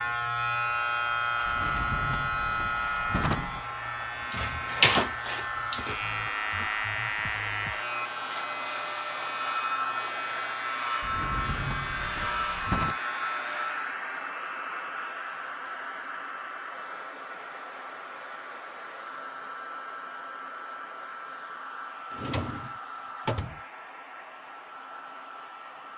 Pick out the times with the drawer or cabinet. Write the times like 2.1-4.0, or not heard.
1.4-3.6, 11.0-12.9, 22.1-23.6.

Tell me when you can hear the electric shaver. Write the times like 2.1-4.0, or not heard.
0.0-14.0.